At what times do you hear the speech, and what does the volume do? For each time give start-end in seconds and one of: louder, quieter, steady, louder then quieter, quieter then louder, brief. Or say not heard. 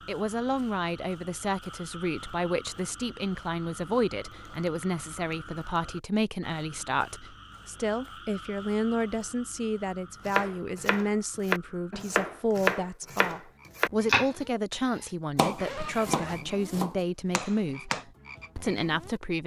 0.1-19.4 steady.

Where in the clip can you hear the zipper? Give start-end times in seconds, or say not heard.
15.6-16.6.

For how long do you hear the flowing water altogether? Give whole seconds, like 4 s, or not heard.
not heard.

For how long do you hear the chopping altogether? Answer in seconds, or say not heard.
8 s.